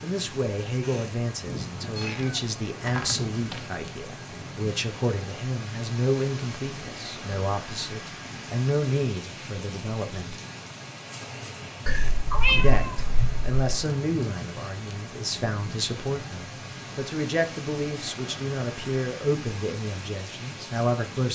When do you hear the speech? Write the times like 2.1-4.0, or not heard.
0.0-10.4, 12.6-21.3.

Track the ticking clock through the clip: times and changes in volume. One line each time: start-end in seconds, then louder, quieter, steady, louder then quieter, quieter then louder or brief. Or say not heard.
not heard.